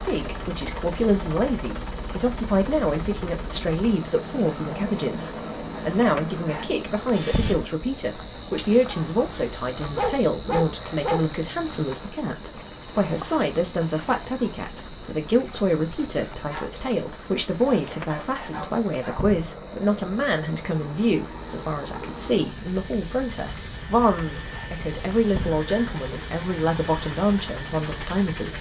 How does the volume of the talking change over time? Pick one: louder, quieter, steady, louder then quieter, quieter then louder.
steady.